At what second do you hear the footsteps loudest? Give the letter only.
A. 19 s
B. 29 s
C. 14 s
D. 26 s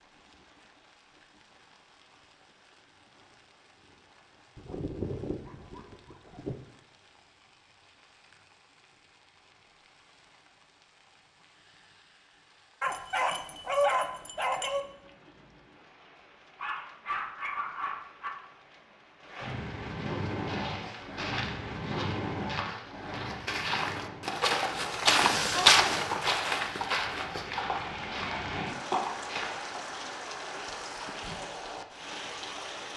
D.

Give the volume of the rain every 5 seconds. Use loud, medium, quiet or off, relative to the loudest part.
quiet, quiet, quiet, medium, loud, loud, loud.